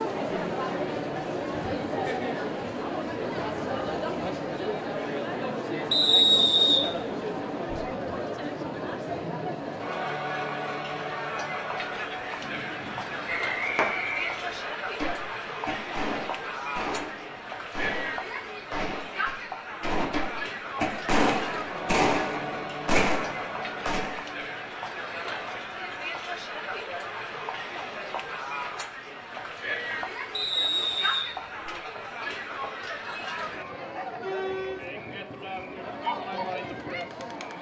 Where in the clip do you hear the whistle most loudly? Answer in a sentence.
The volume of the whistle peaks at 6 seconds.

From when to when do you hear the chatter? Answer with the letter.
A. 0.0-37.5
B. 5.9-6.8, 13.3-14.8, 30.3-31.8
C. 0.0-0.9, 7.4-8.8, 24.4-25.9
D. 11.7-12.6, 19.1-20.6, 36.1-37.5
A.